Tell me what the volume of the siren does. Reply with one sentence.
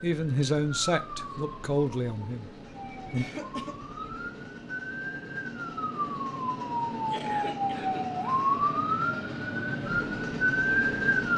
The loudness of the siren goes up.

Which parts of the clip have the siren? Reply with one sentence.
The siren can be heard from 0.0 to 11.3 s.